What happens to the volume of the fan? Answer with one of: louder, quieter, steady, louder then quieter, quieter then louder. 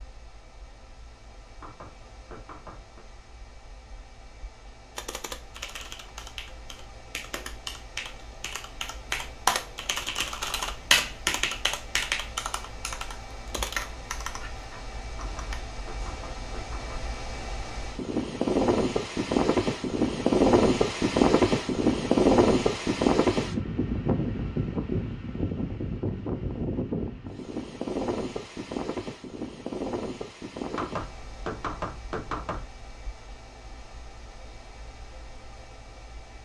louder then quieter.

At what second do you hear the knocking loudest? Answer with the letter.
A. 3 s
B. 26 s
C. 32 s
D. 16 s
C.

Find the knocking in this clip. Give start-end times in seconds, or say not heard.
1.6-3.0, 15.1-17.1, 30.7-32.6.